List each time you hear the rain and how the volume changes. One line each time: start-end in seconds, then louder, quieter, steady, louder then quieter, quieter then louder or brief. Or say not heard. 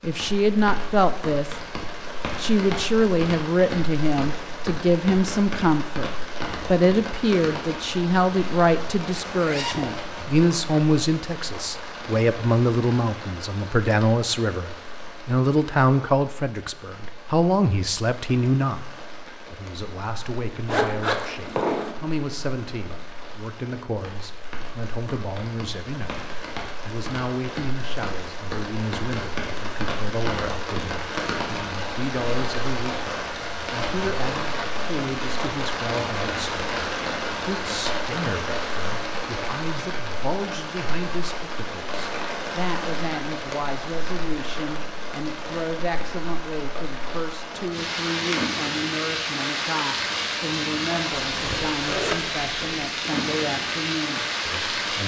0.0-55.0 quieter then louder.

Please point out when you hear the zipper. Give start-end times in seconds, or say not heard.
9.2-10.1, 20.6-21.9, 51.2-52.9.